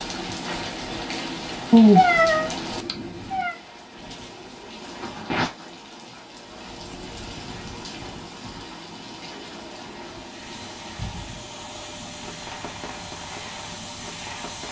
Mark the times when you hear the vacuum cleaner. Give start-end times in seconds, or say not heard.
10.1-14.6.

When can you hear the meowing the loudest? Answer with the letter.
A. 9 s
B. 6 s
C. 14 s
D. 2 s
D.